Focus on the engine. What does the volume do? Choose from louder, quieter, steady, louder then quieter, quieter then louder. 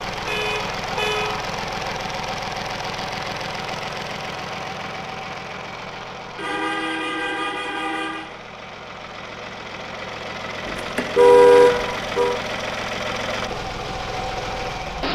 quieter then louder.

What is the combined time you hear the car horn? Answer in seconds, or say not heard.
5 s.